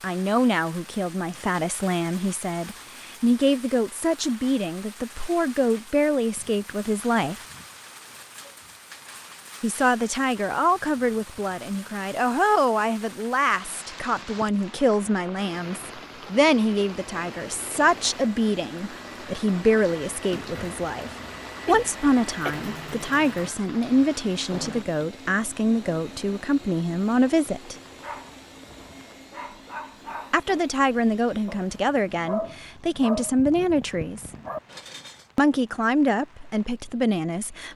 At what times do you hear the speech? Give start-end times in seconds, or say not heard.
0.0-7.4, 9.6-27.8, 30.3-34.3, 35.4-37.7.